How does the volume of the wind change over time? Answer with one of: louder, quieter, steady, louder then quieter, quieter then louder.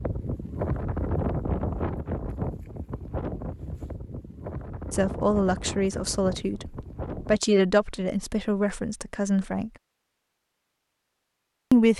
quieter.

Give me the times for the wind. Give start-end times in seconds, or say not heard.
0.0-7.4.